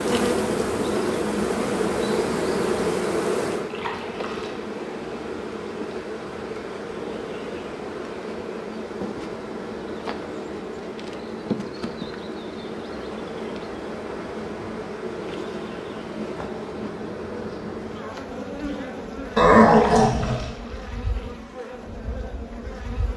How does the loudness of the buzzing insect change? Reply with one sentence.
The volume of the buzzing insect goes down.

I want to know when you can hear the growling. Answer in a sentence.
You can hear the growling from 19.4 to 20.4 s.